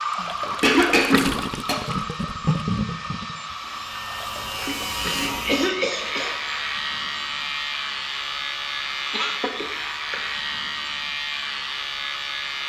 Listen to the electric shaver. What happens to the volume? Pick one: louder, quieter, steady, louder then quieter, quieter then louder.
steady.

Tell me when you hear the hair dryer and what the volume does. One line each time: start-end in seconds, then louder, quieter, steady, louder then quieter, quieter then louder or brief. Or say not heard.
0.0-12.6 quieter.